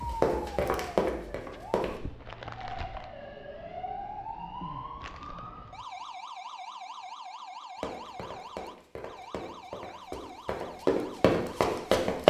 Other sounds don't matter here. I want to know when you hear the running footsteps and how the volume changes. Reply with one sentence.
You can hear the running footsteps briefly from 0.2 to 1.9 s; and from 7.8 to 12.2 s, getting louder.